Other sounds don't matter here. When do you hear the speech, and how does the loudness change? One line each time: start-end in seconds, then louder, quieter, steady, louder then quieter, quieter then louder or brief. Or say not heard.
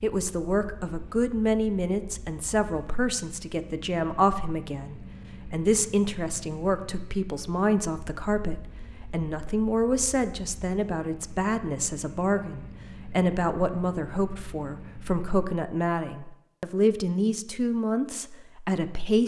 0.0-19.2 steady.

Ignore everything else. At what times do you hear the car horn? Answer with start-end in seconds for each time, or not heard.
not heard.